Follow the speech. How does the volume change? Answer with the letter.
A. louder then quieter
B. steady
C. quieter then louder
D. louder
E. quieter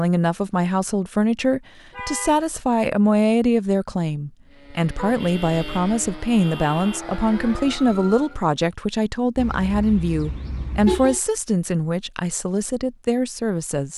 B.